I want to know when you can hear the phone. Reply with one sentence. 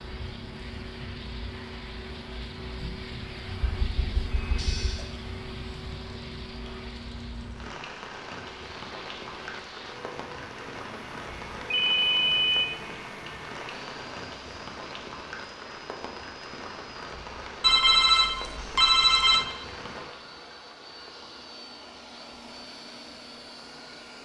The phone can be heard from 3.6 to 5.0 s, from 11.7 to 12.7 s and from 17.6 to 19.4 s.